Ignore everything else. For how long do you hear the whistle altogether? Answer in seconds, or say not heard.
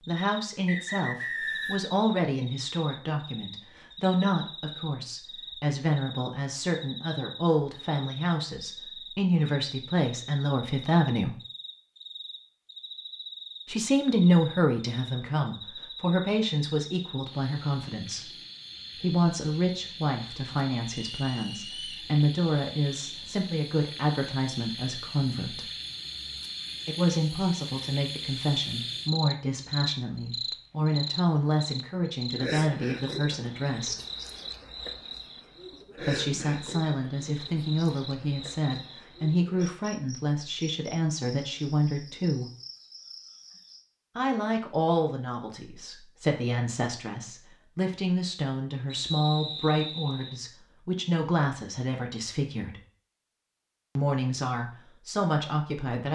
4 s.